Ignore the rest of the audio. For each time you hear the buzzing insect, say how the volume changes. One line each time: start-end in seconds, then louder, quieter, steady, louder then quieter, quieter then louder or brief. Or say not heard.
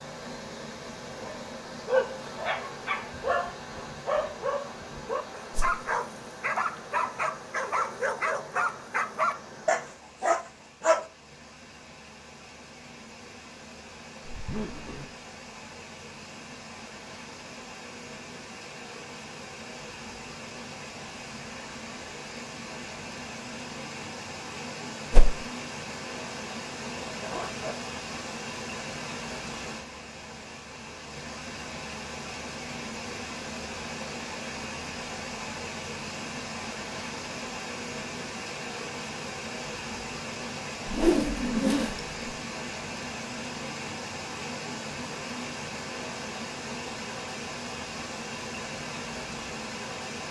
not heard.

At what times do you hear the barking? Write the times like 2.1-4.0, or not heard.
1.1-11.1.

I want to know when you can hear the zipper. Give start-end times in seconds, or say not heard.
14.2-15.1, 26.9-27.8.